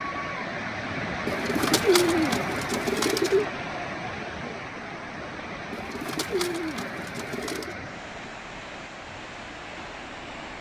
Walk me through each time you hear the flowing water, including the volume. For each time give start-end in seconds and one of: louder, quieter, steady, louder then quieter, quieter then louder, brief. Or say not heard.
0.0-10.5 quieter.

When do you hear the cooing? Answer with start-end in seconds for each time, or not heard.
1.2-3.5, 5.7-7.8.